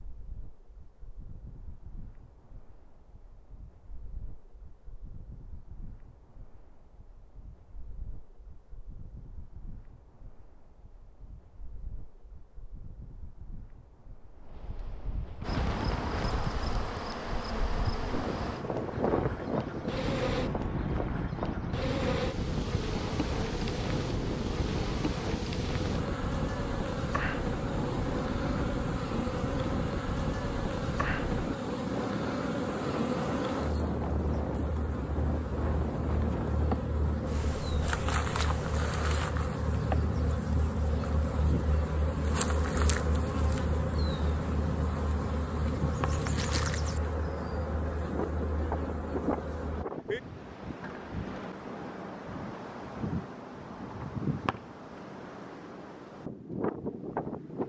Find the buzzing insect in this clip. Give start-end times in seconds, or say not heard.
15.4-49.9.